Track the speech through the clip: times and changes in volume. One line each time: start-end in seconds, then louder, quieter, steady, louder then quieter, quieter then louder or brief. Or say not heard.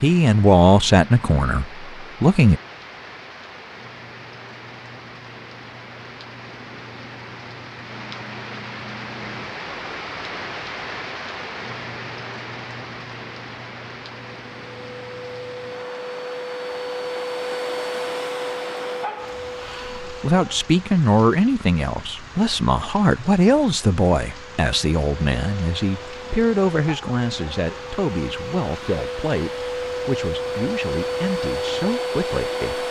0.0-2.6 brief
20.1-32.8 quieter.